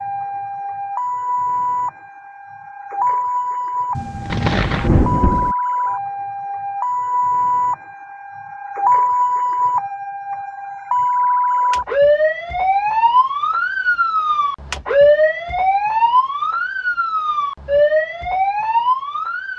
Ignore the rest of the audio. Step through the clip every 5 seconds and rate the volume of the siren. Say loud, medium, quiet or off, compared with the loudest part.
medium, loud, loud, loud.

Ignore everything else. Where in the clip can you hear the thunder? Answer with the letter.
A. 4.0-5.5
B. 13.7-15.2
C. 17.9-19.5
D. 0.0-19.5
A.